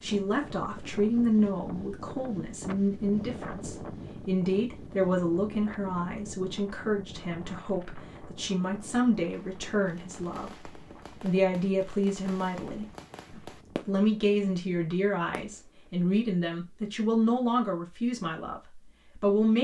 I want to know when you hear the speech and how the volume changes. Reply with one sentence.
You can hear the speech from 0.0 to 19.5 s, at a steady volume.